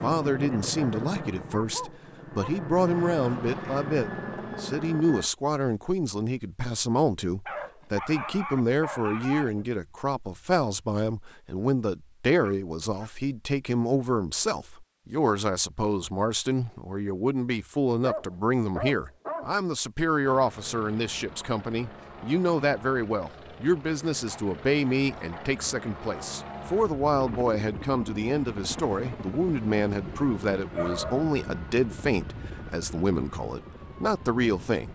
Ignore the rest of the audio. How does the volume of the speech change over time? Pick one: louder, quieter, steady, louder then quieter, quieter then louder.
steady.